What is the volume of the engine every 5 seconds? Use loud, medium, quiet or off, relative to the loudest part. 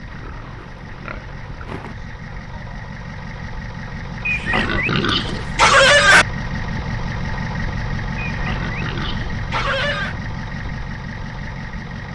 medium, loud, loud.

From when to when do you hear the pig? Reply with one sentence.
The pig can be heard from 0.1 to 1.9 s, from 4.2 to 6.2 s and from 8.2 to 10.2 s.